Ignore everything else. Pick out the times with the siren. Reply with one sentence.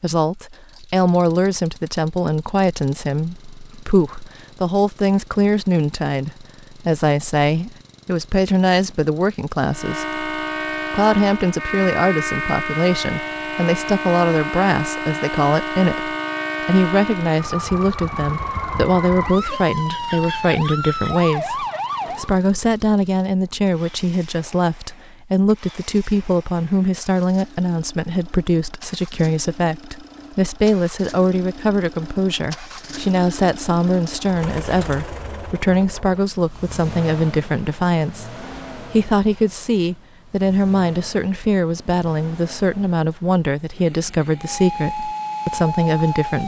The siren can be heard from 9.7 to 22.4 s and from 44.4 to 46.4 s.